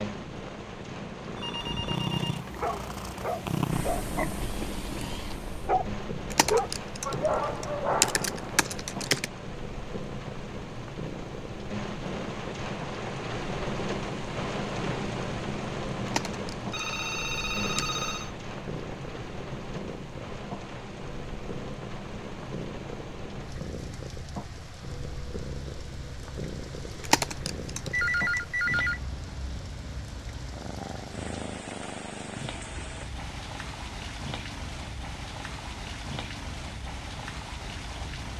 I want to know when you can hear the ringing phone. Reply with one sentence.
You can hear the ringing phone from 1.4 to 2.5 s, from 16.7 to 18.3 s and from 27.9 to 29.0 s.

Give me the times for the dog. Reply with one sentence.
The dog can be heard from 2.4 to 8.6 s.